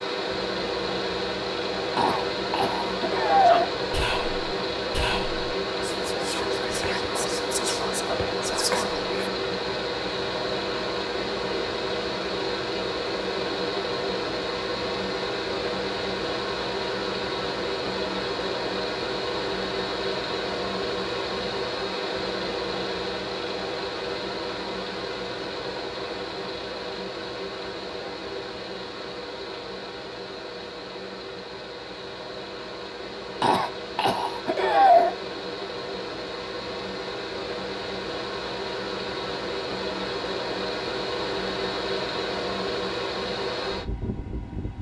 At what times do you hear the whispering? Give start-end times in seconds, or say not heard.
3.5-9.3.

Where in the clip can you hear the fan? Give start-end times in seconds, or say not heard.
0.0-44.7.